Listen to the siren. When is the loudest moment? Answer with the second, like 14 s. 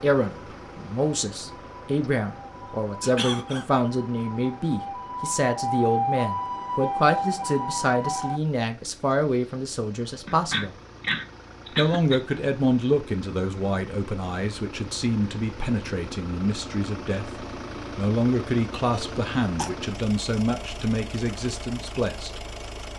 6 s.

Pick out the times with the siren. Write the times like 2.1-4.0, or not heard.
0.1-8.4.